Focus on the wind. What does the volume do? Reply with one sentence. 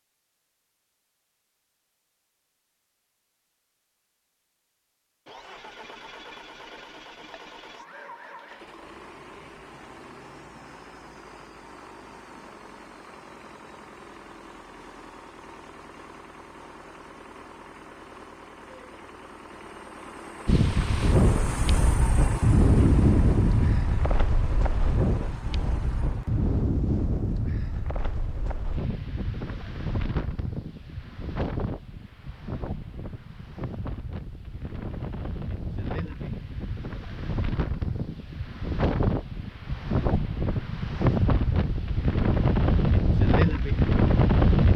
The volume of the wind goes down, then up.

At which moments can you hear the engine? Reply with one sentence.
The engine can be heard from 5.2 to 26.6 s.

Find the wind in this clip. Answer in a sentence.
You can hear the wind from 20.4 to 44.7 s.